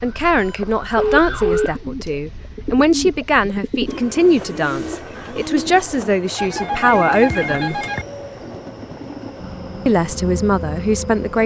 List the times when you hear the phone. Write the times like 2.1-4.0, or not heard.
0.4-1.7, 6.3-8.1.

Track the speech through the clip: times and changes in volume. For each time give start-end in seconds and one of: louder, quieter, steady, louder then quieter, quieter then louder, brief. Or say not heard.
0.0-7.8 steady
9.8-11.4 brief.